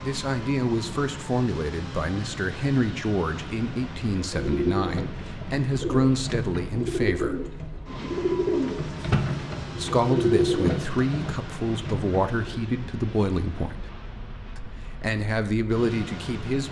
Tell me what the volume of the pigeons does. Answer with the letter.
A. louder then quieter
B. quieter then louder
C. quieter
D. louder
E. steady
A.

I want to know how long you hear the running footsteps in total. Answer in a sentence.
The running footsteps can't be heard in this clip.